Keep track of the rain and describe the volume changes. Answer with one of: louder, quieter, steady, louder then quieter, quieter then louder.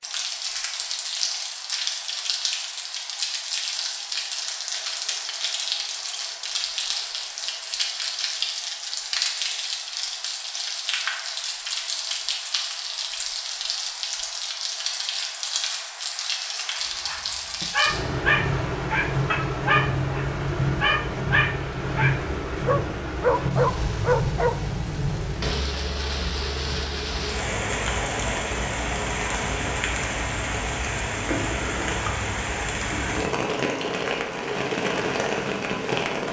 steady.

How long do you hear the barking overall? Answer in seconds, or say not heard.
8 s.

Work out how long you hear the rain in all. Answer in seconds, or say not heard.
36 s.